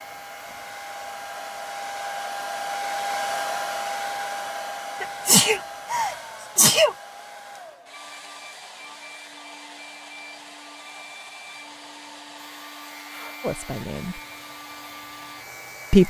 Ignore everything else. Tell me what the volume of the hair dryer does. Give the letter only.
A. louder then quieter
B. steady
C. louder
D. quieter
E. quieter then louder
D.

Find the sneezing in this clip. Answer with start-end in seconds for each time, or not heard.
5.0-7.0.